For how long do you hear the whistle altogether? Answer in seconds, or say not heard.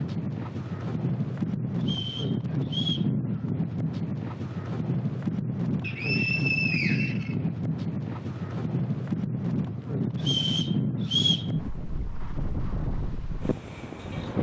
4 s.